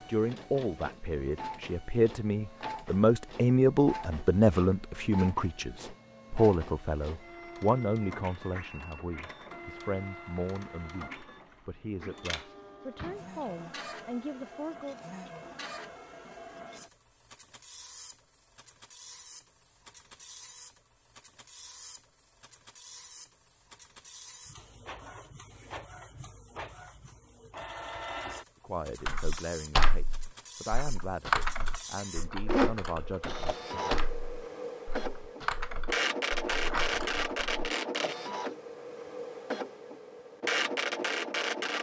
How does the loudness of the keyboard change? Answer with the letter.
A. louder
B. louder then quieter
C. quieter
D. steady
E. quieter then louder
C.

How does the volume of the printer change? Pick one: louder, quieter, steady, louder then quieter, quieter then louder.
quieter then louder.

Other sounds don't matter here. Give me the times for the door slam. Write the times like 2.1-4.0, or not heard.
12.9-13.6.